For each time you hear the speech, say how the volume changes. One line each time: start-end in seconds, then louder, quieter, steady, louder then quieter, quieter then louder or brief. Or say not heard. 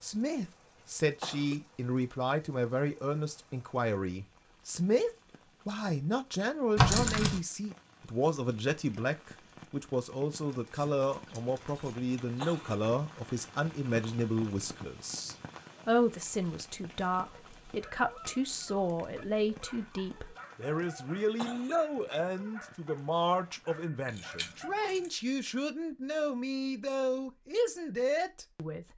0.0-28.9 steady.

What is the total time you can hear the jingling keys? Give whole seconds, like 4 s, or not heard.
3 s.